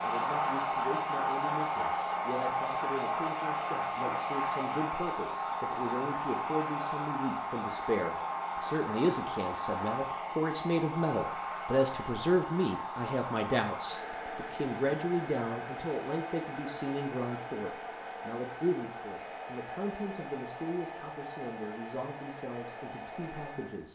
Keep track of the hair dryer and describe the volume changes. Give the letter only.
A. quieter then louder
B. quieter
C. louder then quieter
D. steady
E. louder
B.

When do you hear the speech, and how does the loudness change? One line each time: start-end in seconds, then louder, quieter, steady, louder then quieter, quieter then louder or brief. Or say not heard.
0.0-23.9 louder then quieter.